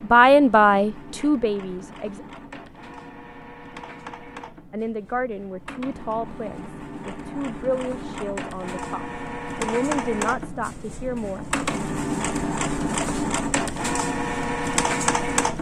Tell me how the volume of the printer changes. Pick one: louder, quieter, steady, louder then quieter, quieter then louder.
louder.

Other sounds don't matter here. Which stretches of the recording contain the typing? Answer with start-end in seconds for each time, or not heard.
not heard.